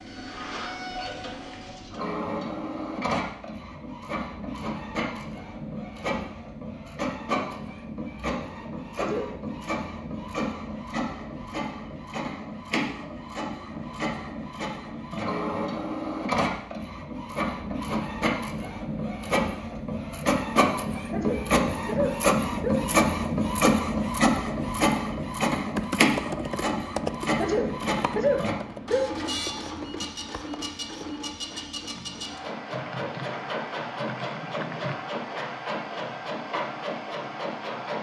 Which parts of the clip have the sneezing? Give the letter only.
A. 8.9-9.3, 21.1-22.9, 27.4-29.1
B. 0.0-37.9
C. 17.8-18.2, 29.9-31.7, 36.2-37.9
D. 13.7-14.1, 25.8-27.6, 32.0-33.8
A.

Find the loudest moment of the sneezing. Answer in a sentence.
The volume of the sneezing peaks at 28 seconds.